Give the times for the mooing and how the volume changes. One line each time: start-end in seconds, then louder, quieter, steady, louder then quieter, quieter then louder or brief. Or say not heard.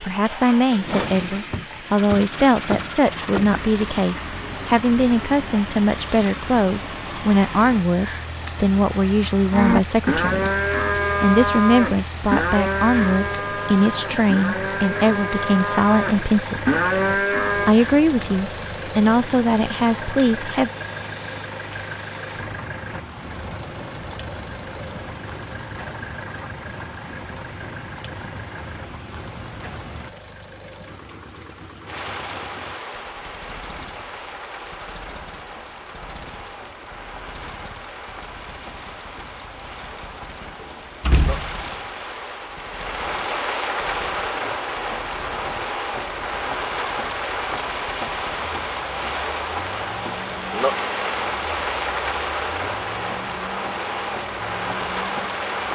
9.5-17.8 quieter then louder.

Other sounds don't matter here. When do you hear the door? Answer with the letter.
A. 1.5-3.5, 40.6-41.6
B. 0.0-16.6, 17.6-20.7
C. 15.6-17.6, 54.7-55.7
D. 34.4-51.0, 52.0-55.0
A.